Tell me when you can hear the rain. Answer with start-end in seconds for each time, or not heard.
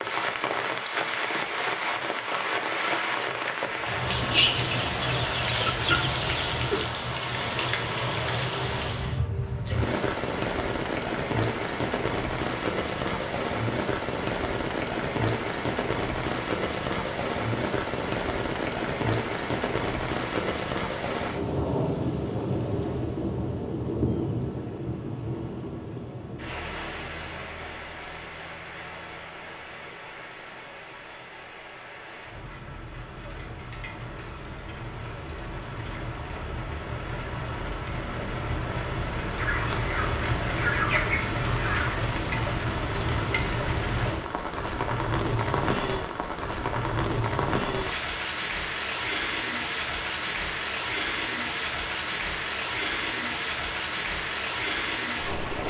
0.0-55.6.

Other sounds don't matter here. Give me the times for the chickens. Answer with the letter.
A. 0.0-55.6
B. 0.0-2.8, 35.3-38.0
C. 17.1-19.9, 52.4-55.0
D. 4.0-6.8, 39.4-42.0
D.